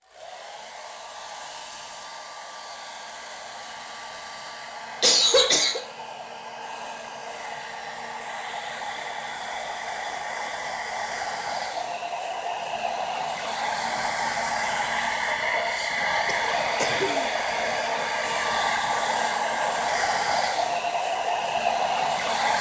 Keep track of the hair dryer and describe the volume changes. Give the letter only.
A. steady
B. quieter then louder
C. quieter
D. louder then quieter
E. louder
E.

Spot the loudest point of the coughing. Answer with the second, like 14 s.
5 s.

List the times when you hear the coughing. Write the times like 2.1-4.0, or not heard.
5.0-5.8, 16.2-17.2.